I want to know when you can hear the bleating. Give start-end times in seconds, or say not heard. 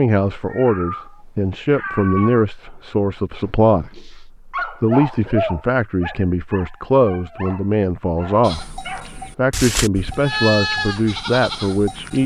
8.4-12.2.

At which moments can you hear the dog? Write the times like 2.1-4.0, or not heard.
3.5-9.3.